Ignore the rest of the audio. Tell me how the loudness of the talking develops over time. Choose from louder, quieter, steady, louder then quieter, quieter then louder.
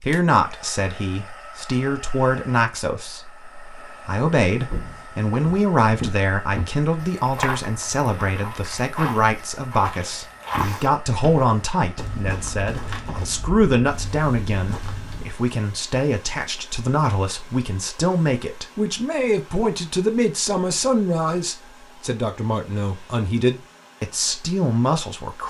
steady.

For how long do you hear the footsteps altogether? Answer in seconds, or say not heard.
11 s.